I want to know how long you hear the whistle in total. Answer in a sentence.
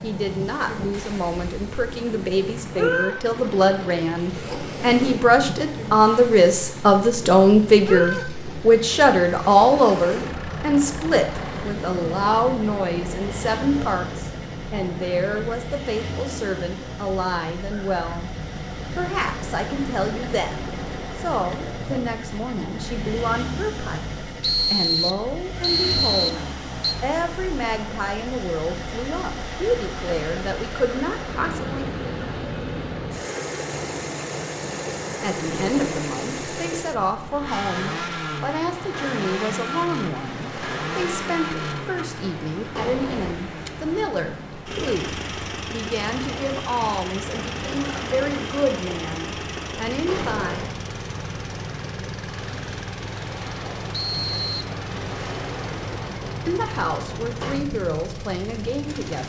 You can hear the whistle for 3 seconds altogether.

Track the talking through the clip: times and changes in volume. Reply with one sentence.
The talking can be heard from 0.0 to 18.3 s, getting louder then quieter; from 18.9 to 31.9 s, at a steady volume; from 35.2 to 50.7 s, at a steady volume; and briefly from 56.5 to 59.2 s.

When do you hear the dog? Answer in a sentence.
The dog can't be heard in this clip.